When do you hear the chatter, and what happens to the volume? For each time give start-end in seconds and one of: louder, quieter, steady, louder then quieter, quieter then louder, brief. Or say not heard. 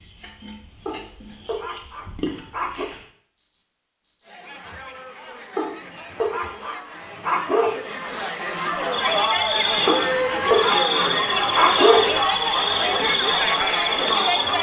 4.2-14.5 louder.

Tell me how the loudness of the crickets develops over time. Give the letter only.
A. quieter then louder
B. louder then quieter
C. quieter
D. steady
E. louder
E.